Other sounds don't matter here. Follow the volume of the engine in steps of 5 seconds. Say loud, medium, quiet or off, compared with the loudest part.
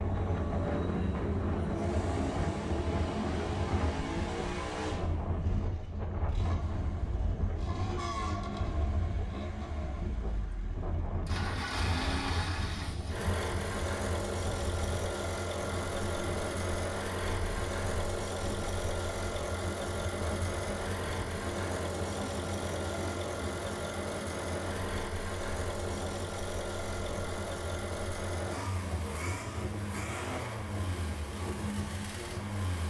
loud, medium, loud, loud, loud, loud, loud.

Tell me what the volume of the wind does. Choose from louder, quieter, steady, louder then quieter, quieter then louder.
quieter.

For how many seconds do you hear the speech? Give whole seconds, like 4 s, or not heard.
not heard.